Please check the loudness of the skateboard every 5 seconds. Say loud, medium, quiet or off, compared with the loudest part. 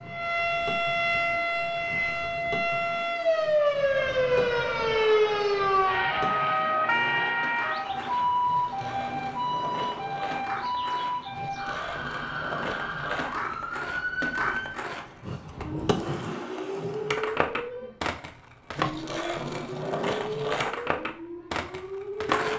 quiet, medium, medium, loud, loud.